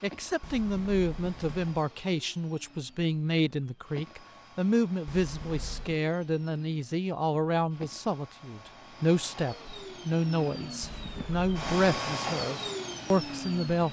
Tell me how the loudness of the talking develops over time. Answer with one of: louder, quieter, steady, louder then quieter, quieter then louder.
steady.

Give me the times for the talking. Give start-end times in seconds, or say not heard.
0.0-13.8.